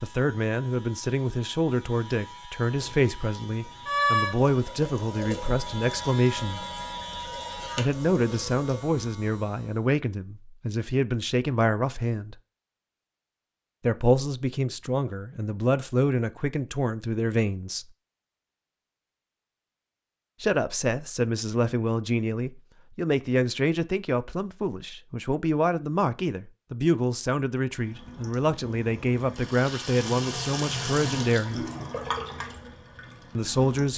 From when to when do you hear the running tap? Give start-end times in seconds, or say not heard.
2.8-8.8, 27.7-33.9.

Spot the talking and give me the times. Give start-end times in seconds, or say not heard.
0.0-6.7, 7.8-12.3, 13.8-17.9, 20.4-31.6, 33.4-33.9.